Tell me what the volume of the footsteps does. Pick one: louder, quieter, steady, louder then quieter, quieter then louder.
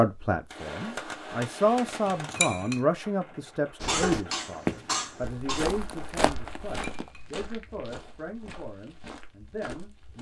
quieter.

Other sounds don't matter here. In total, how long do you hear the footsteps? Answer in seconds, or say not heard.
6 s.